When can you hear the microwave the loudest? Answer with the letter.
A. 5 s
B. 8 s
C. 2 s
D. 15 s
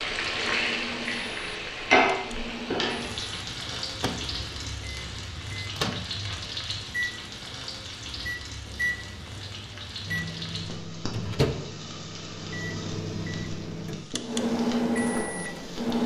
D.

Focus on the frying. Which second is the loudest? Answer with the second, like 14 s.
2 s.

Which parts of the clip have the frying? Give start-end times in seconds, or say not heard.
0.0-16.0.